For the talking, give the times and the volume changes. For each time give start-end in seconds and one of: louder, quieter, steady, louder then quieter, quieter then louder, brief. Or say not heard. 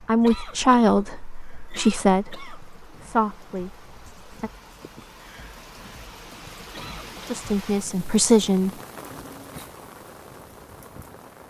0.0-4.5 quieter
7.2-8.8 brief.